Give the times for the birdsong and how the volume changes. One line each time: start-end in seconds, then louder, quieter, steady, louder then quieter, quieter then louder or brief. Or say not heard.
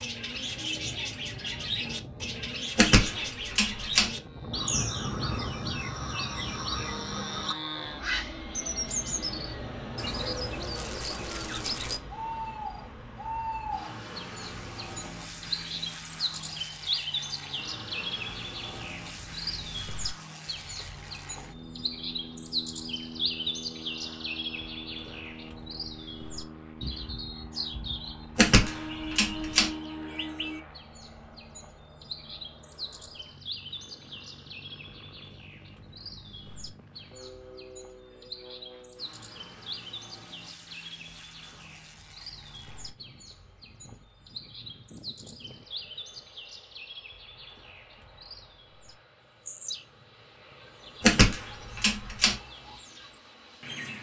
0.0-53.9 quieter.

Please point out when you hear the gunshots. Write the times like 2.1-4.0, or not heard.
2.8-4.1, 28.4-29.7, 51.0-52.4.